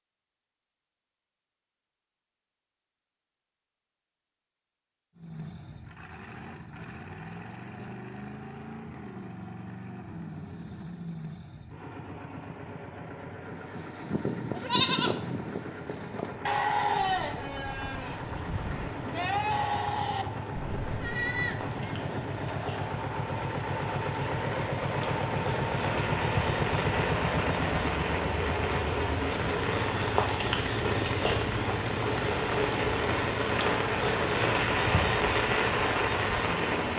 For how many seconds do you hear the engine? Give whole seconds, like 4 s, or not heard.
32 s.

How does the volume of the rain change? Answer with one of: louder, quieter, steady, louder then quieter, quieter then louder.
louder.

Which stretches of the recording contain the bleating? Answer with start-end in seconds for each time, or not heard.
13.4-22.0.